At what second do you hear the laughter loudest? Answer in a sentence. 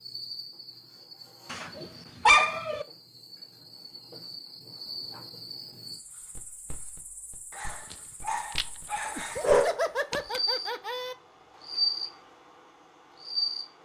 The loudest moment of the laughter is at 10 seconds.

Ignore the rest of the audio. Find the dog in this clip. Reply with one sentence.
You can hear the dog from 1.5 to 2.9 s and from 7.5 to 10.4 s.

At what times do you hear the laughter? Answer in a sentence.
You can hear the laughter from 9.2 to 11.2 s.